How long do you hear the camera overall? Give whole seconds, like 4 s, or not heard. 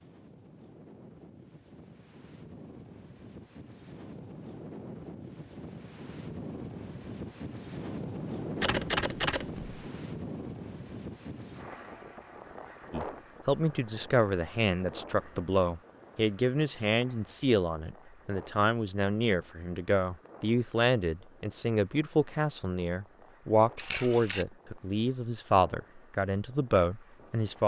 2 s.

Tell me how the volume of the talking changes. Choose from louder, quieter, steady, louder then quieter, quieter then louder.
steady.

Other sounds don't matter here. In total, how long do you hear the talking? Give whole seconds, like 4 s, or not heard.
15 s.